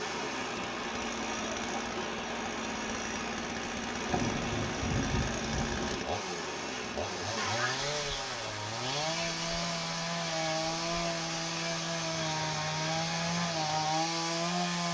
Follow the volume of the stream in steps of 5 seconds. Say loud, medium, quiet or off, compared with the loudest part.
loud, loud, medium.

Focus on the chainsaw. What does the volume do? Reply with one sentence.
The volume of the chainsaw goes up.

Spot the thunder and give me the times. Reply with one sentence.
The thunder can be heard from 4.0 to 6.0 s.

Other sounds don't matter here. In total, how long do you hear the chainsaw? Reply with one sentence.
The chainsaw can be heard for 15 seconds in total.